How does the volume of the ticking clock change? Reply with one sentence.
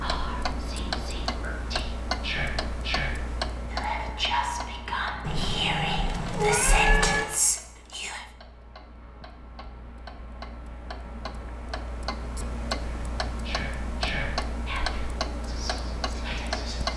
The loudness of the ticking clock goes down, then up.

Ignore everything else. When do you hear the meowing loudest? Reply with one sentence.
The volume of the meowing peaks at 7 seconds.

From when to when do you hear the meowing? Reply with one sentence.
You can hear the meowing from 5.2 to 7.2 s.